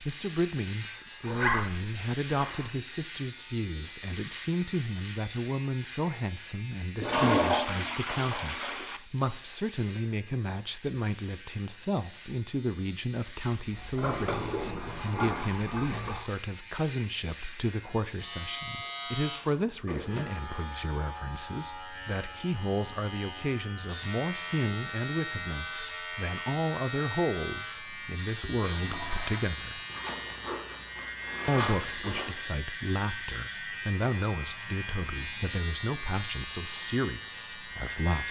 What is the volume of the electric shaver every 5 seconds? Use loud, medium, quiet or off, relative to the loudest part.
loud, medium, medium, loud, loud, loud, loud, loud.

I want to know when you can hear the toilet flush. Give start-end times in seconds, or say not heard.
7.0-9.0, 13.6-16.3, 28.2-29.5.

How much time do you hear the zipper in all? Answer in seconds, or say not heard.
5 s.